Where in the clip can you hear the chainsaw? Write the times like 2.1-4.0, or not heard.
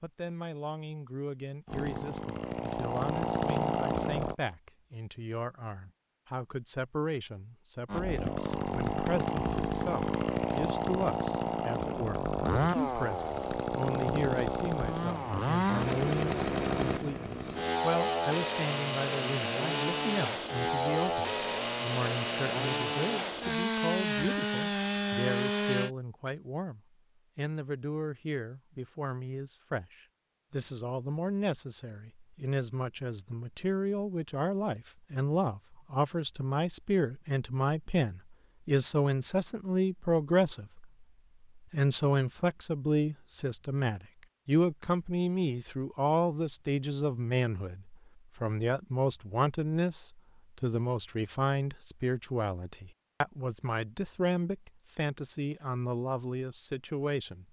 1.6-4.3, 7.8-25.9.